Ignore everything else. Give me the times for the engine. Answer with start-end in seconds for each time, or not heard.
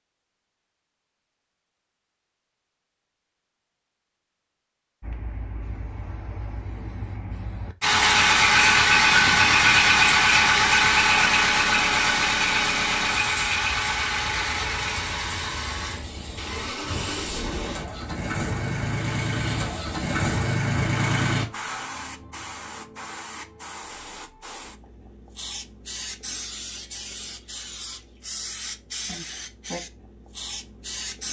7.8-21.4.